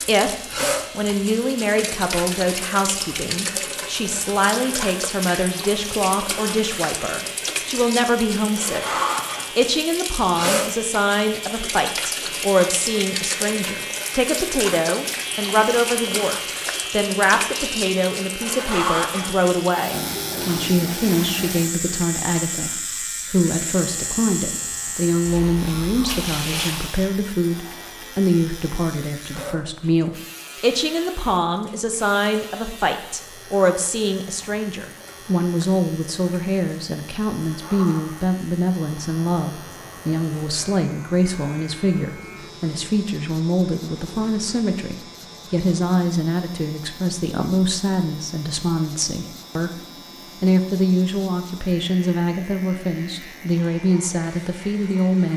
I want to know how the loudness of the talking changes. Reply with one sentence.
The loudness of the talking stays about the same.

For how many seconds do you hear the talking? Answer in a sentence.
The talking can be heard for 55 seconds in total.